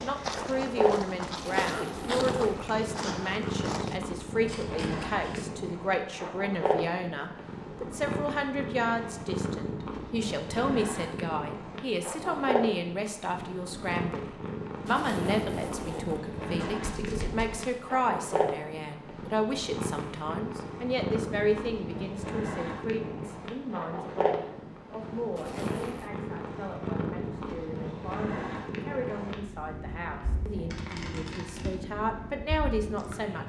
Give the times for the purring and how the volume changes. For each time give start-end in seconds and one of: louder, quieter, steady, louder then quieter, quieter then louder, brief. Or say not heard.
0.2-33.4 steady.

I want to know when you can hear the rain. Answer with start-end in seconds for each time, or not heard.
not heard.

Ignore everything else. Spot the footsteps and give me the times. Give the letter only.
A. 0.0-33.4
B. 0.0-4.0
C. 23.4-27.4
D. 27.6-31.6
B.